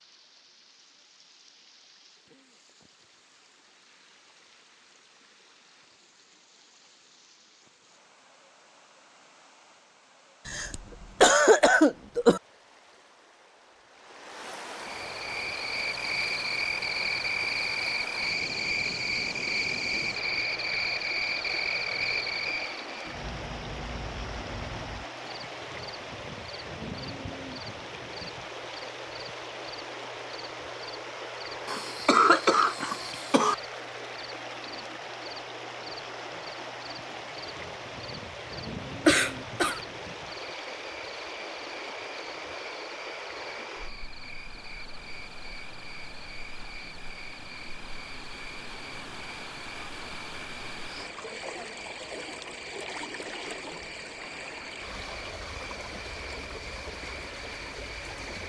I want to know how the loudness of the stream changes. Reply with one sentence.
The volume of the stream goes up.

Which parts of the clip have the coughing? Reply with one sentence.
The coughing can be heard from 10.4 to 12.4 s, from 31.6 to 33.5 s and from 39.0 to 39.8 s.